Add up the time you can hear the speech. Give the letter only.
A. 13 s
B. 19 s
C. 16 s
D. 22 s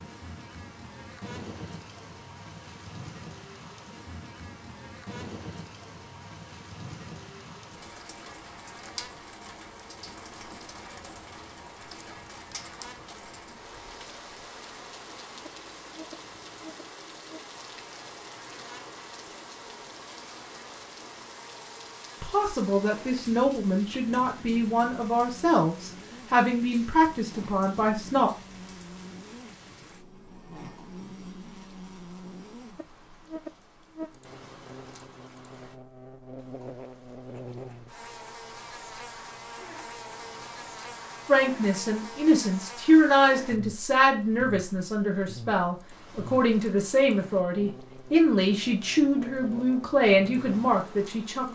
C.